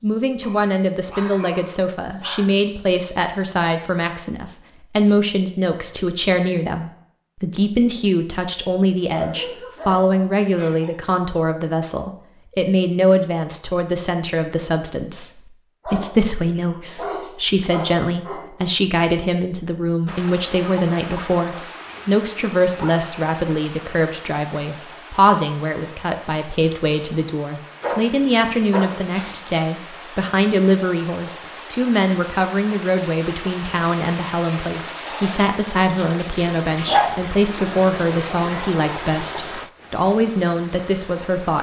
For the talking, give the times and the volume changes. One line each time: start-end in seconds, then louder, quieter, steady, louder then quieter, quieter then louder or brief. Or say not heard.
0.0-41.5 steady.